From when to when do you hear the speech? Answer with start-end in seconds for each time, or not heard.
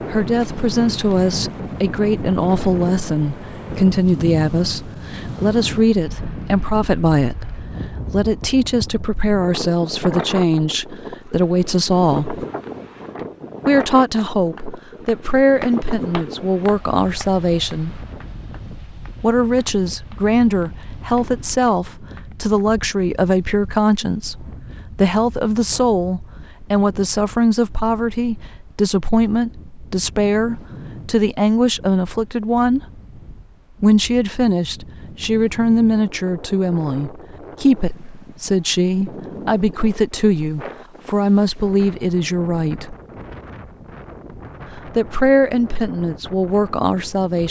0.1-12.4, 13.7-17.9, 19.2-32.9, 33.8-43.0, 44.8-47.4.